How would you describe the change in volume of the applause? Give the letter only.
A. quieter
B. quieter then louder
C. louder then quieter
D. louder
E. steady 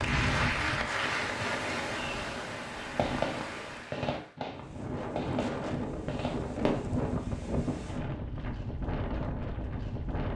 A.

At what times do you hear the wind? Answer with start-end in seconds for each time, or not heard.
0.0-10.3.